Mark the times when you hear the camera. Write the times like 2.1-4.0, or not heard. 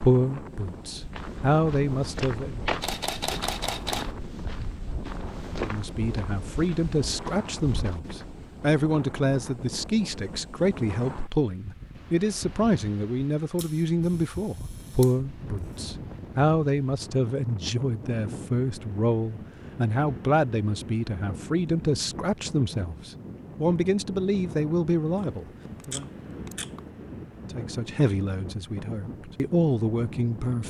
2.8-4.2, 13.6-15.2, 25.1-26.8.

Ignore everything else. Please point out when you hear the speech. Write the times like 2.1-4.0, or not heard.
0.0-2.6, 5.6-26.1, 27.5-30.6.